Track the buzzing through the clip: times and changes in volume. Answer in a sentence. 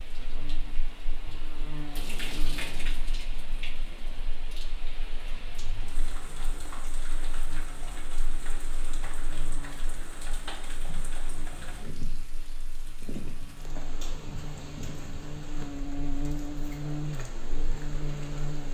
You can hear the buzzing from 0.0 to 18.6 s, getting quieter then louder.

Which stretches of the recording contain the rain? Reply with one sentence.
The rain can be heard from 0.0 to 18.6 s.